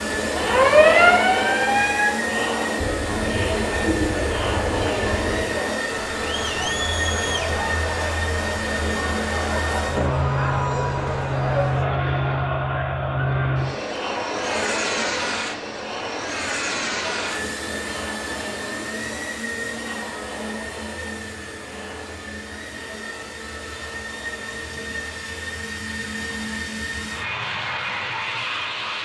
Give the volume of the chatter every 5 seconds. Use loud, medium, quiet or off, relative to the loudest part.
loud, loud, loud, medium, quiet, quiet.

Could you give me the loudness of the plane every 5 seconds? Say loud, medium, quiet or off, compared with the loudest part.
loud, loud, loud, loud, medium, loud.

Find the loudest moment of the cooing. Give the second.
4 s.